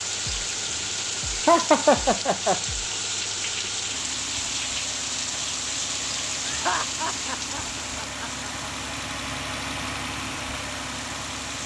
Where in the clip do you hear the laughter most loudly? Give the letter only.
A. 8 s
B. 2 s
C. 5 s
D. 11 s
B.